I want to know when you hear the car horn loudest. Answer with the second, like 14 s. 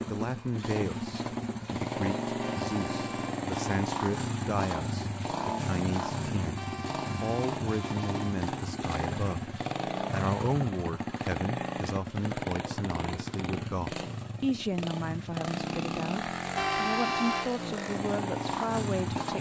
17 s.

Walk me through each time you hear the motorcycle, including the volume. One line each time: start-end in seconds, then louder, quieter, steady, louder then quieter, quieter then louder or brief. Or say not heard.
0.0-19.3 steady.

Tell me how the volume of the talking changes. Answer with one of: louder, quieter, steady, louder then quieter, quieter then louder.
steady.